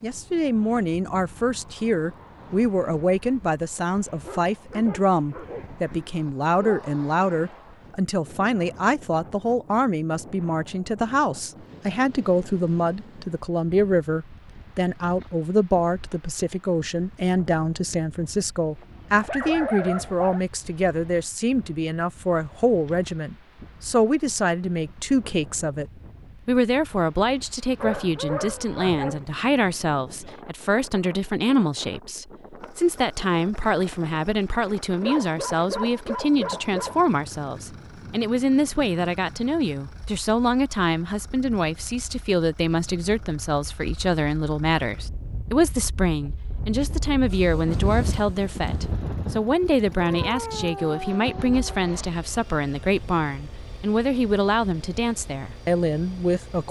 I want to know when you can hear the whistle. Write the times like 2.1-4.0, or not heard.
not heard.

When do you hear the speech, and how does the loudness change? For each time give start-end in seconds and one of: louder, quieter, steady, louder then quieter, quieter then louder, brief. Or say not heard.
0.0-56.6 steady.